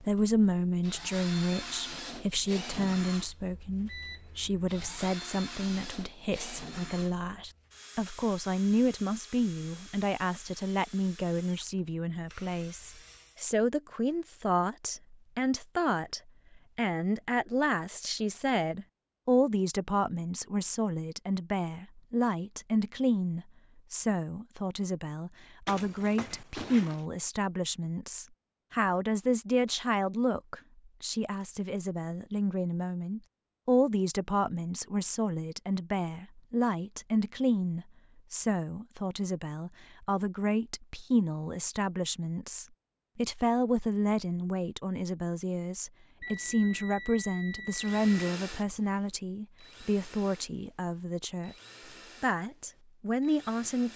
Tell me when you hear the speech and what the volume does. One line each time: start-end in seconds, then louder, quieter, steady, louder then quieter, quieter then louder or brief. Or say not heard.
0.0-51.5 steady
52.2-53.9 brief.